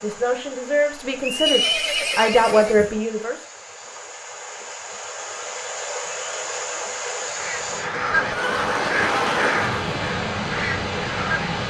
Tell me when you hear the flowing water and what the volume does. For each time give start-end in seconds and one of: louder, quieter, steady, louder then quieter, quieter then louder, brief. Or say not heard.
0.0-11.6 louder.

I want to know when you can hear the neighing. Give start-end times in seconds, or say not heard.
1.2-3.0, 8.3-10.2.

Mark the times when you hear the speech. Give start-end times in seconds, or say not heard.
0.0-3.4.